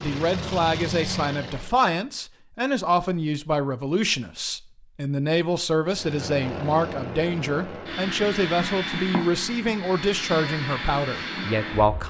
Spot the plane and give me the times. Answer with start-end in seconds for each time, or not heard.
0.0-1.8, 5.8-12.0.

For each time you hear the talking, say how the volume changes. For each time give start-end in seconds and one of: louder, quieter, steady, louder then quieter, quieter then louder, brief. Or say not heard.
0.0-12.0 steady.